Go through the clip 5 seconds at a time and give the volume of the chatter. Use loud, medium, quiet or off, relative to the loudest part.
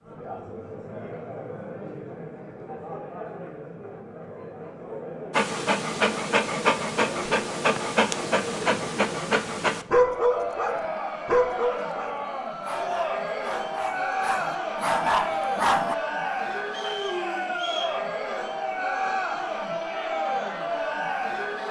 medium, medium, loud, loud, loud.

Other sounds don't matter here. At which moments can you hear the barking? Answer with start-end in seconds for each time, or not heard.
5.3-15.9.